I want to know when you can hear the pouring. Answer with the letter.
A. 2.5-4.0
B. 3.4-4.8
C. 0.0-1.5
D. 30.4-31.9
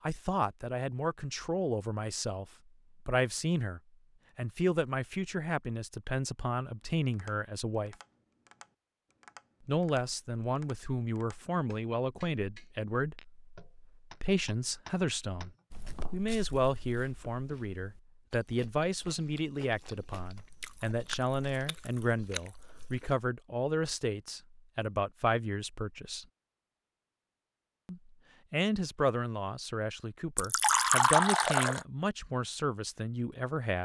D.